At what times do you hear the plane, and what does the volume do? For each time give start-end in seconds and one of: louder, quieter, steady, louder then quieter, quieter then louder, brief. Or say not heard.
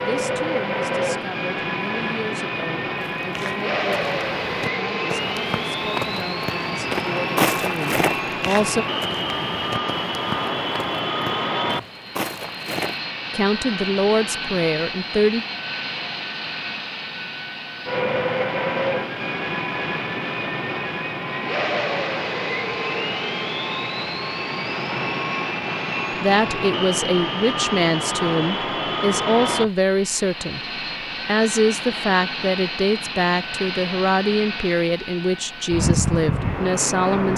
0.0-37.3 steady.